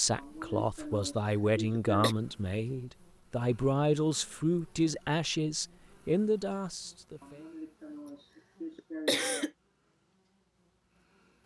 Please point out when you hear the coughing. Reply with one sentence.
The coughing can be heard from 0.1 to 2.1 s and from 7.2 to 9.5 s.